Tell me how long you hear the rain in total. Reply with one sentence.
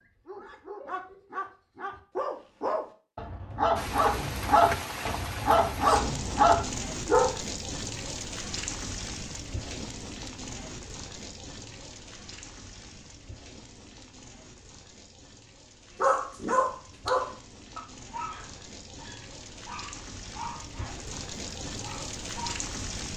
The rain can be heard for 19 seconds in total.